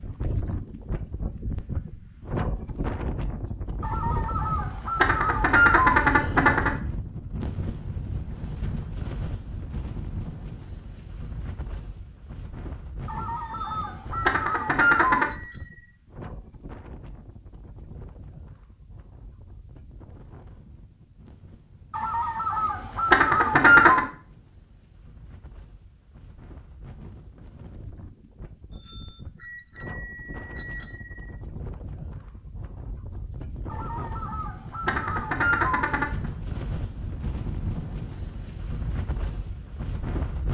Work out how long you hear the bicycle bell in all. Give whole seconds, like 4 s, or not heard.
5 s.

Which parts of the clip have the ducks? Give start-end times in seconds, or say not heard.
3.8-6.7, 13.1-15.2, 21.9-24.1, 33.7-36.3.